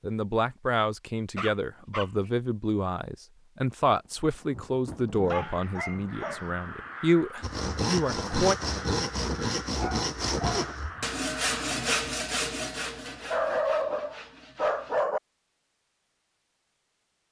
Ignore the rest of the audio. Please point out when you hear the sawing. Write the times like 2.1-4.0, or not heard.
7.4-15.1.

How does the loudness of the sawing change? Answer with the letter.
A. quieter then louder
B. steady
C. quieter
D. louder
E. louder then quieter
C.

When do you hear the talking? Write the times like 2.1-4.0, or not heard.
0.0-8.6.